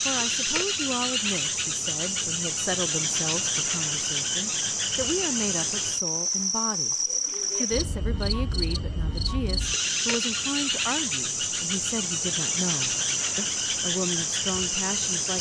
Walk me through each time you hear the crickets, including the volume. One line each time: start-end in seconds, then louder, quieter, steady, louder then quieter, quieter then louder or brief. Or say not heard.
0.0-15.3 steady.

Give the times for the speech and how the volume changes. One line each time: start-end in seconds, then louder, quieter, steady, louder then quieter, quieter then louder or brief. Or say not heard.
0.1-15.3 steady.